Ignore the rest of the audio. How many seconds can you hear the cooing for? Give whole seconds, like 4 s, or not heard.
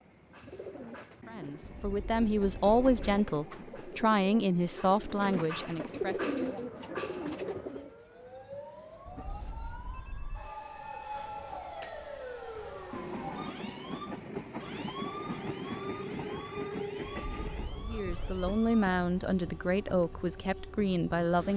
8 s.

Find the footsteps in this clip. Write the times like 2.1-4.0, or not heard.
not heard.